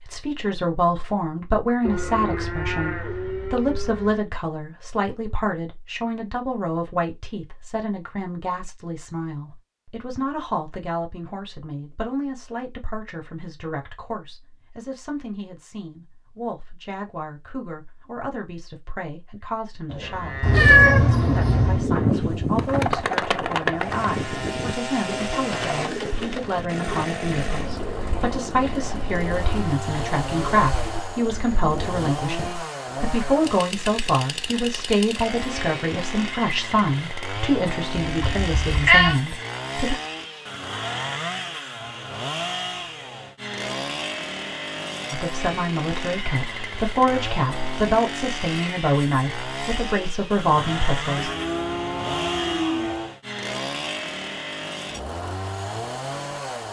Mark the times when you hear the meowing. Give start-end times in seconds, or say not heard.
20.4-21.9, 38.0-39.1.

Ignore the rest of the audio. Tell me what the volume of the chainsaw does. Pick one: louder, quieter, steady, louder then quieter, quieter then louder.
steady.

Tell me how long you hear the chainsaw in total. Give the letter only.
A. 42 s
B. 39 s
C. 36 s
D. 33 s
D.